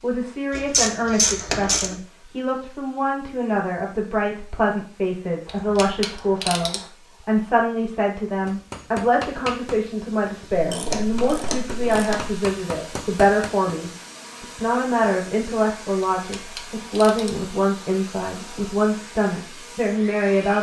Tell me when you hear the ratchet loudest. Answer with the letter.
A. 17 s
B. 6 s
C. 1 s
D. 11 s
C.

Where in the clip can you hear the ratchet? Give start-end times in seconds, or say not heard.
0.5-1.9, 5.5-6.8, 10.5-12.4, 16.1-17.4.